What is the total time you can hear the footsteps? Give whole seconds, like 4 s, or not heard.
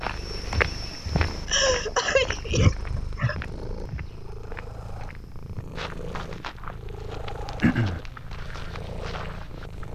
10 s.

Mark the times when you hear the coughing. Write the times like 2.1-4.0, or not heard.
1.4-3.4, 7.6-8.0.